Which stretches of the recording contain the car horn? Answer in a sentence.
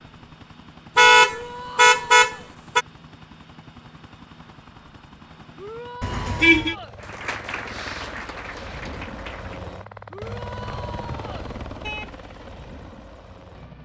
The car horn can be heard from 0.9 to 2.9 s, from 6.0 to 6.8 s and from 10.7 to 12.2 s.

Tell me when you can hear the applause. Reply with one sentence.
You can hear the applause from 7.0 to 9.7 s.